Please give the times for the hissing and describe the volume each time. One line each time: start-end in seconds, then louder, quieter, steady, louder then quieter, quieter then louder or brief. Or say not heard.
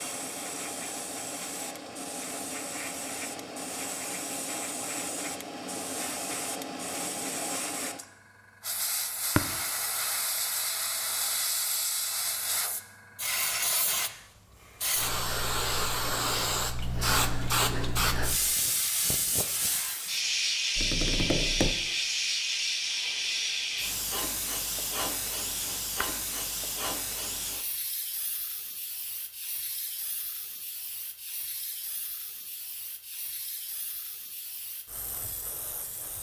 0.0-36.1 louder then quieter.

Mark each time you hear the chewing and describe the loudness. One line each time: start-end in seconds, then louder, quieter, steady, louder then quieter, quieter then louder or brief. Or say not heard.
not heard.